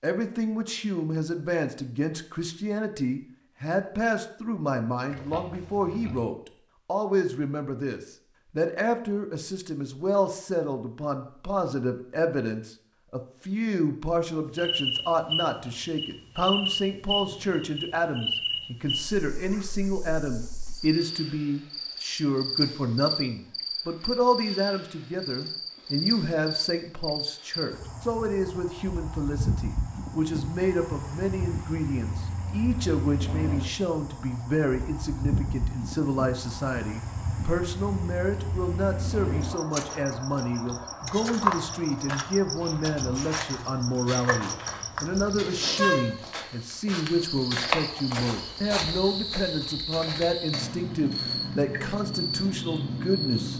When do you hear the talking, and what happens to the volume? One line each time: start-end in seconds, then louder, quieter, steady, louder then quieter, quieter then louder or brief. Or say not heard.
0.0-53.5 steady.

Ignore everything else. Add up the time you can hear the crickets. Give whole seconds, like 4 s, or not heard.
39 s.